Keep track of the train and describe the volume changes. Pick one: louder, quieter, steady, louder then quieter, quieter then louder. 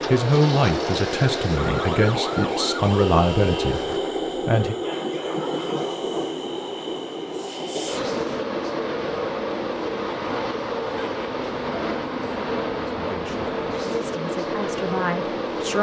steady.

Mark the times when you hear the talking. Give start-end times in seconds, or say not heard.
0.1-4.8, 12.9-15.7.